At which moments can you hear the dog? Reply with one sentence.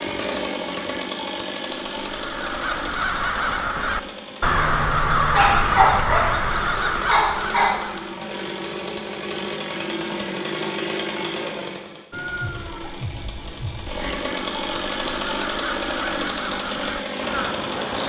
The dog can be heard from 5.3 to 7.8 s.